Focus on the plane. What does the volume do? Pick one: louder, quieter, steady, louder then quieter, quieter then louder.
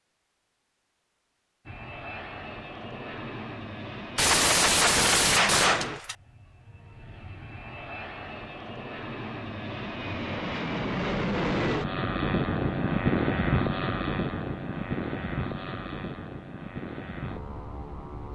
louder then quieter.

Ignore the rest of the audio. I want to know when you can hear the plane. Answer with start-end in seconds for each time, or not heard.
1.6-18.3.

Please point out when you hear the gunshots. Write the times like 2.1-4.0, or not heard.
4.2-6.2.